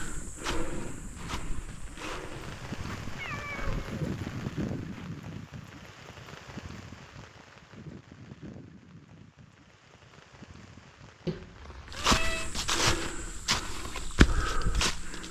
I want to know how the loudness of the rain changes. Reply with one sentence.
The loudness of the rain goes up, then down.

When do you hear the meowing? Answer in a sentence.
You can hear the meowing from 2.4 to 4.2 s and from 11.2 to 12.5 s.